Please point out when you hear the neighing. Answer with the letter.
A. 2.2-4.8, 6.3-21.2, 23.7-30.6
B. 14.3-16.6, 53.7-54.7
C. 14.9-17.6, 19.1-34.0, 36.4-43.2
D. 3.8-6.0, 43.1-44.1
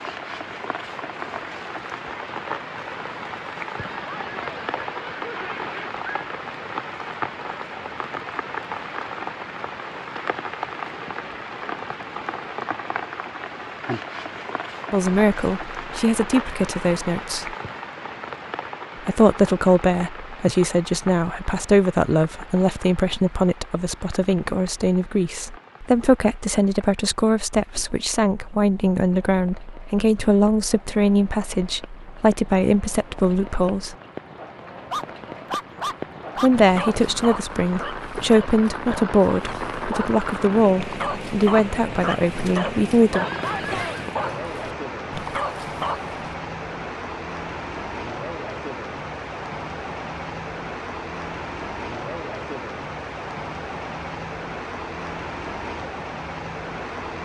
D.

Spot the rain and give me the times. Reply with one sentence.
You can hear the rain from 0.0 to 57.2 s.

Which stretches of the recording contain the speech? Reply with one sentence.
The speech can be heard from 14.9 to 17.6 s, from 19.1 to 34.0 s and from 36.4 to 43.2 s.